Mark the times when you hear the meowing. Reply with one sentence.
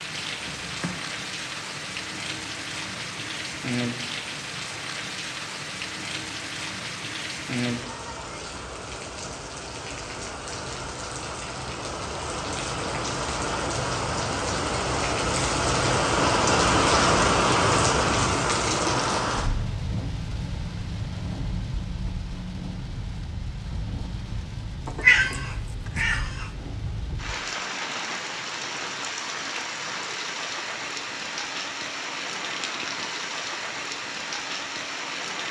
The meowing can be heard from 0.4 to 1.1 s and from 24.9 to 26.5 s.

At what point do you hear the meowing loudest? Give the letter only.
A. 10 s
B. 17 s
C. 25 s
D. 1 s
C.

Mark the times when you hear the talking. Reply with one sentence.
You can't hear the talking here.